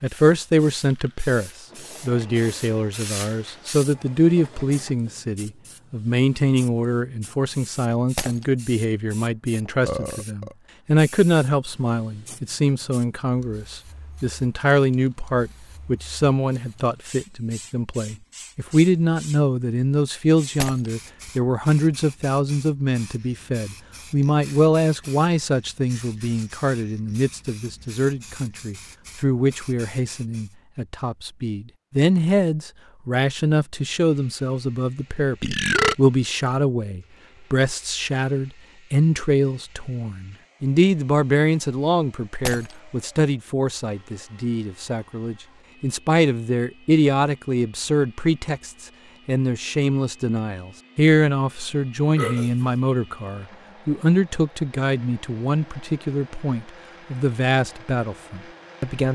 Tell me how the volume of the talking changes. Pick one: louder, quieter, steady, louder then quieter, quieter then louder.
steady.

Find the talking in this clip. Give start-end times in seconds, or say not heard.
0.0-59.1.